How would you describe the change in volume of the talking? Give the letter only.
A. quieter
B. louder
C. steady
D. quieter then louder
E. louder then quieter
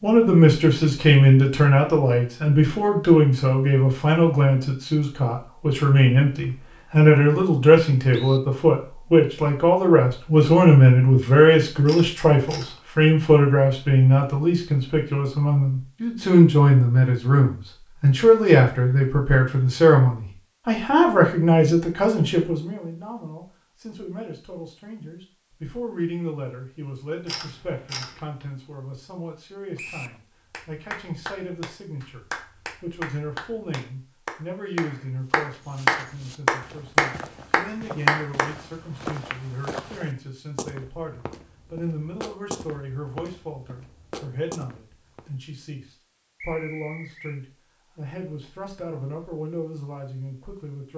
A.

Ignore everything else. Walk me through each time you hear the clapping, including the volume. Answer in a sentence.
You can hear the clapping from 30.5 to 38.5 s, getting louder.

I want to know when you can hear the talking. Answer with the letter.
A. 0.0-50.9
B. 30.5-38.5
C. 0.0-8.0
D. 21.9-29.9
A.